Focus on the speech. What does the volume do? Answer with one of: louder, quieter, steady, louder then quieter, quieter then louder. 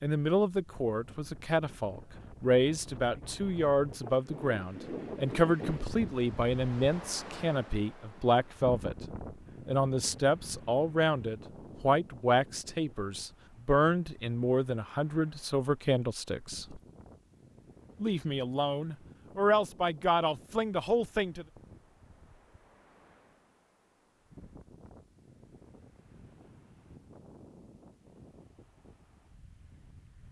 steady.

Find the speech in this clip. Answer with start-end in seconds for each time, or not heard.
0.0-16.8, 18.0-21.4.